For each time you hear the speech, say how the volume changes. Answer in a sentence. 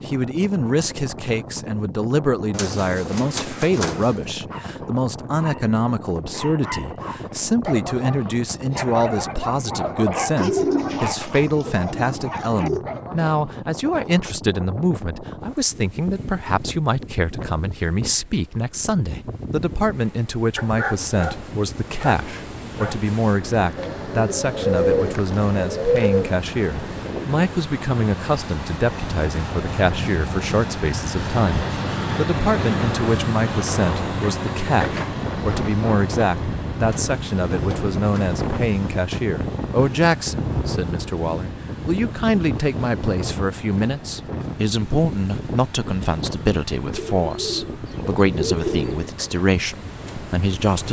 The speech can be heard from 0.1 to 50.8 s, at a steady volume.